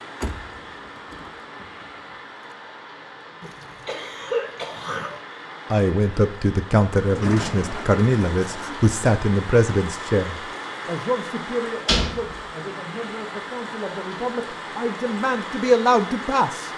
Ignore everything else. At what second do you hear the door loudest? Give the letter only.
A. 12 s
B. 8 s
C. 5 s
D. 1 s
A.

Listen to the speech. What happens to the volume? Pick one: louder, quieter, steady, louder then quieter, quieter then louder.
quieter then louder.